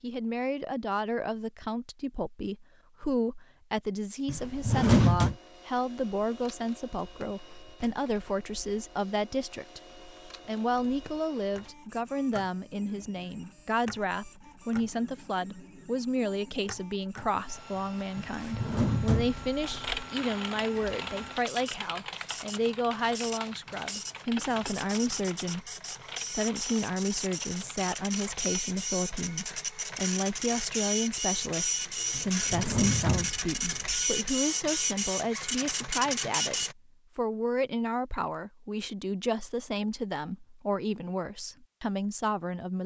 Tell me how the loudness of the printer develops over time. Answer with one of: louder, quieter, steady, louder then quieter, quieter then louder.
louder.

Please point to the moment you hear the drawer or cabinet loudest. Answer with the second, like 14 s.
5 s.